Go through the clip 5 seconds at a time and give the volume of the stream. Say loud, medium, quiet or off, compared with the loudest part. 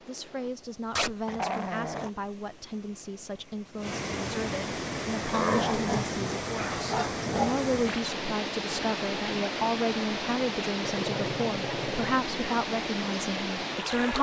medium, loud, loud.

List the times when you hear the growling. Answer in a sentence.
The growling can be heard from 0.9 to 2.1 s, from 5.3 to 7.8 s and from 10.8 to 12.2 s.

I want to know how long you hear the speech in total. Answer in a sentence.
The speech can be heard for 14 seconds in total.